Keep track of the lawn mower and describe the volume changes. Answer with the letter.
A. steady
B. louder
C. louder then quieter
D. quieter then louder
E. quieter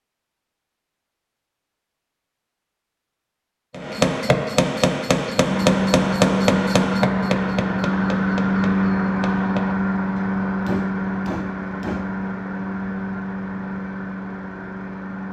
E.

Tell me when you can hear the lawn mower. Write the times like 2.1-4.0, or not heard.
5.3-15.2.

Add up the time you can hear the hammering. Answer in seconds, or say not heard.
8 s.